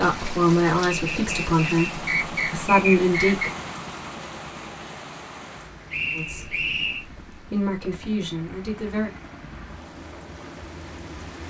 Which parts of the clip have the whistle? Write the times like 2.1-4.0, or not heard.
0.9-3.5, 5.9-7.0.